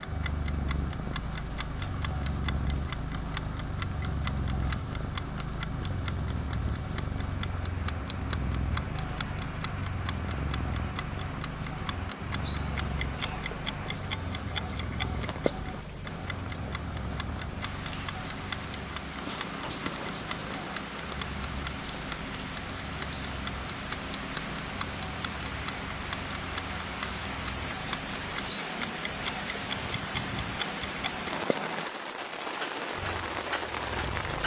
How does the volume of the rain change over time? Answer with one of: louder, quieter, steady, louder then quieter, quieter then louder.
louder.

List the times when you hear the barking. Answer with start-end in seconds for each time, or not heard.
not heard.